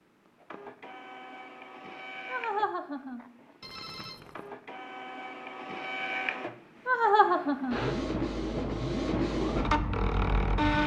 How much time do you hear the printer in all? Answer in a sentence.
You can hear the printer for 11 seconds altogether.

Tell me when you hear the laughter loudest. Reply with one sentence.
The loudest moment of the laughter is at 7 seconds.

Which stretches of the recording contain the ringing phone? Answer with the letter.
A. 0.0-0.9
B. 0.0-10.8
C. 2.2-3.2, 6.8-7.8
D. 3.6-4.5
D.